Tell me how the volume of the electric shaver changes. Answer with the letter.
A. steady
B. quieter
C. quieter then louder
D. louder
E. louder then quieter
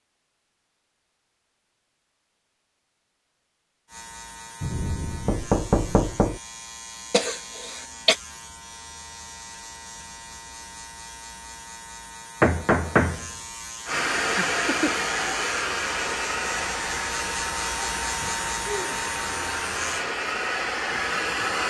D.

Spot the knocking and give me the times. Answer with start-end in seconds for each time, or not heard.
4.6-6.4, 12.4-13.3.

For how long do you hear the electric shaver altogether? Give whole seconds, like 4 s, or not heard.
16 s.